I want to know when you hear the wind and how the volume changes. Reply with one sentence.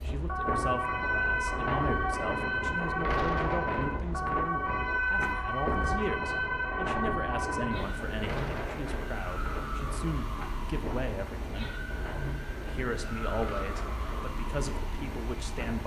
The wind can be heard from 0.0 to 15.8 s, getting quieter.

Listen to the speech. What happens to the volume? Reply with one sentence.
The loudness of the speech stays about the same.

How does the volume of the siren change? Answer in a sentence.
The volume of the siren goes down.